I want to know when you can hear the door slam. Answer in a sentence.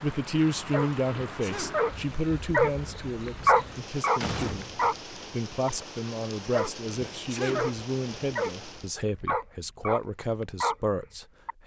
The door slam can be heard from 3.5 to 5.0 s.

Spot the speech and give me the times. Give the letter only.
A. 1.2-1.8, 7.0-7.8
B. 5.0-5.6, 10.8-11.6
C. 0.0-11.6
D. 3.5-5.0
C.